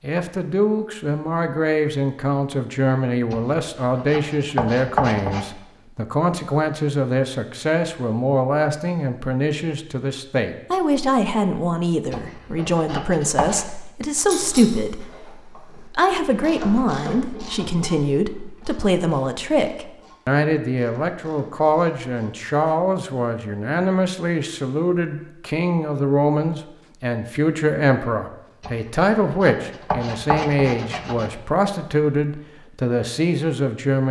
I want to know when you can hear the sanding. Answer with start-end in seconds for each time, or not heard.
3.3-5.5, 12.1-13.7, 28.6-31.3.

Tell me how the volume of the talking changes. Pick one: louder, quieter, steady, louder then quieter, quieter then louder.
steady.